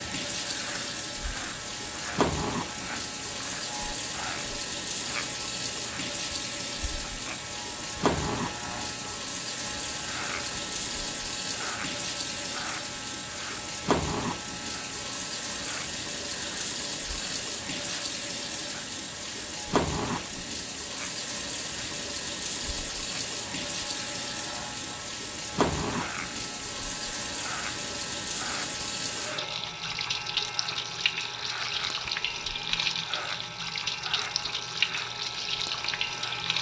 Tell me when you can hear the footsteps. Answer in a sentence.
You can't hear the footsteps here.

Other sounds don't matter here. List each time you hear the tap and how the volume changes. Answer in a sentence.
The tap can be heard from 0.0 to 36.5 s, at a steady volume.